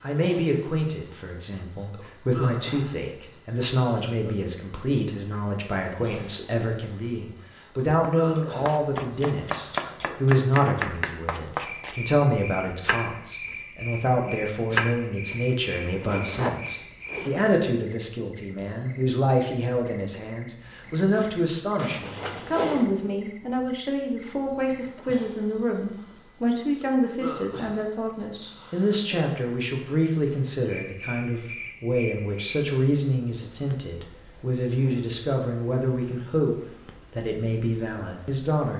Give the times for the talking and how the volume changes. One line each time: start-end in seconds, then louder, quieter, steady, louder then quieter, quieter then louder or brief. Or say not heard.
0.0-38.7 steady.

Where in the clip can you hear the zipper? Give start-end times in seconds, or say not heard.
15.3-17.3, 21.8-22.9.